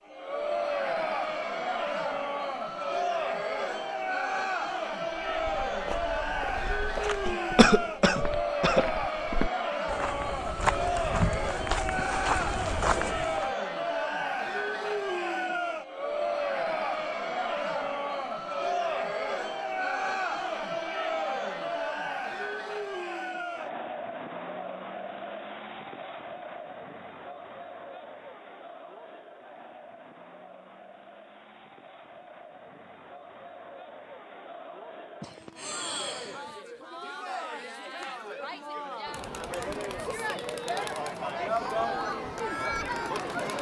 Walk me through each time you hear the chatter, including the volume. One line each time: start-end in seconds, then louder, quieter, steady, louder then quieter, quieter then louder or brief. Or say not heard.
0.1-43.5 quieter then louder.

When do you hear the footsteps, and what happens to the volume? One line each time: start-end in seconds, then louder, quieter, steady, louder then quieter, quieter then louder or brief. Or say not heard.
5.2-13.5 louder.